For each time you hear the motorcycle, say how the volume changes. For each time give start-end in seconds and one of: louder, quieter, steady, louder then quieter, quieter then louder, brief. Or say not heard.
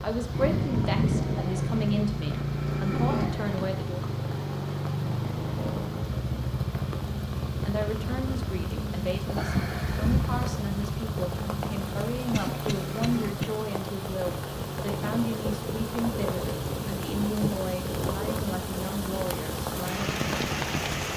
0.0-21.1 quieter.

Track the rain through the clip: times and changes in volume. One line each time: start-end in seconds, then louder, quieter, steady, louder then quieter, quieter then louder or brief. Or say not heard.
0.0-21.1 louder.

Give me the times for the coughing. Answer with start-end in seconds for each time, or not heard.
12.3-13.4.